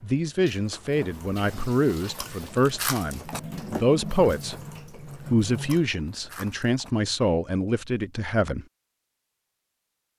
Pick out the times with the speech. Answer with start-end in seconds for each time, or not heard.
0.0-4.5, 5.3-8.7.